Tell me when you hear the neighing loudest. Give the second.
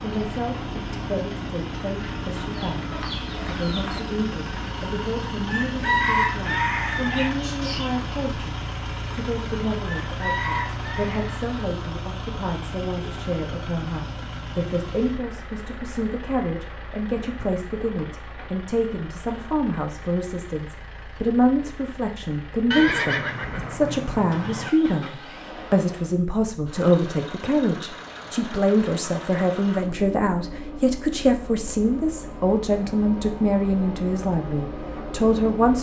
23 s.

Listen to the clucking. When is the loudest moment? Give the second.
6 s.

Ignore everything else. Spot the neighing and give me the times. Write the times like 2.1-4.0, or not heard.
22.7-24.7.